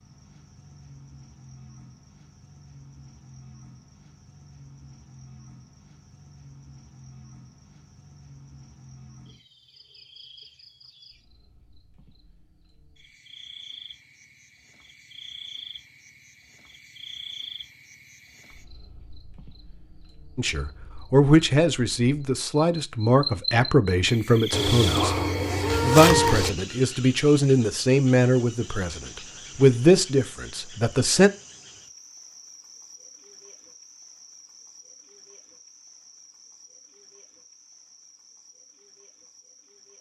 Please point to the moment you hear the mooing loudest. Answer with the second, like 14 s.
26 s.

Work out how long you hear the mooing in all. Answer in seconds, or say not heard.
2 s.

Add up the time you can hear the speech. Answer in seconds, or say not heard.
10 s.